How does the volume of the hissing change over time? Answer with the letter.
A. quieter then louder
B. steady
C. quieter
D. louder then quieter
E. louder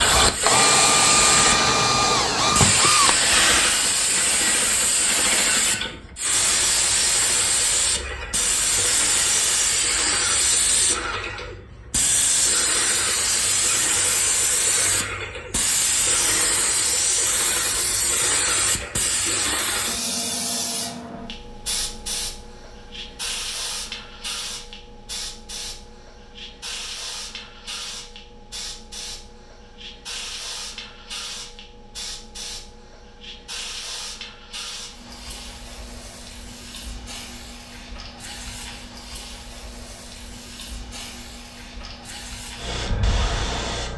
C.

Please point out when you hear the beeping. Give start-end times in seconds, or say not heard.
not heard.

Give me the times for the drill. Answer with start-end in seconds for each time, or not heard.
0.0-3.9.